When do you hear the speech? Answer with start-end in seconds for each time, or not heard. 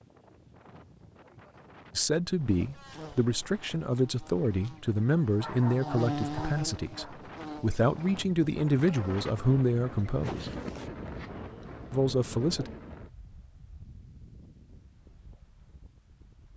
1.9-10.5, 11.9-12.7.